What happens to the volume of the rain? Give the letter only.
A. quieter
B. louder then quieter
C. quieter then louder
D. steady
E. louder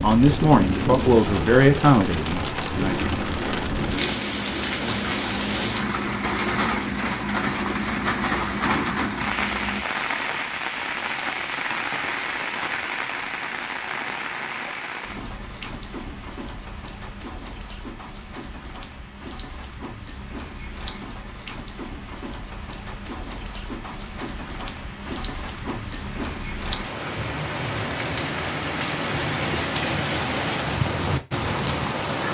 C.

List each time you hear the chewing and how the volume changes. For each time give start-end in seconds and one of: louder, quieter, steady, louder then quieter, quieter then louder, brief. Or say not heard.
2.8-9.8 steady.